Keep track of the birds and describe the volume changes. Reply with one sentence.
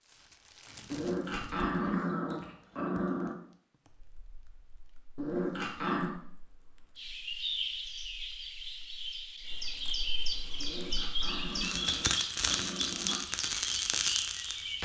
The volume of the birds stays about the same.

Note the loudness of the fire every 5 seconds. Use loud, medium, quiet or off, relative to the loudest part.
quiet, quiet, loud.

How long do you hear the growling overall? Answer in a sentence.
The growling can be heard for 6 seconds in total.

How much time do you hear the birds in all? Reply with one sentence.
You can hear the birds for 8 seconds altogether.